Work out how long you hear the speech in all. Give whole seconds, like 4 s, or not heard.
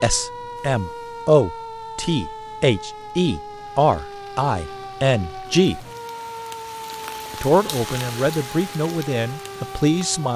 9 s.